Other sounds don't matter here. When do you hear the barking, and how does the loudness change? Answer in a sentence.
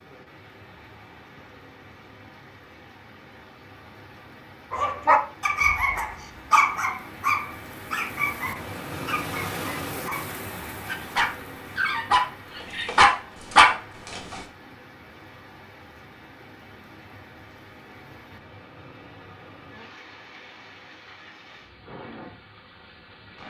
The barking can be heard from 4.7 to 14.4 s, getting quieter then louder.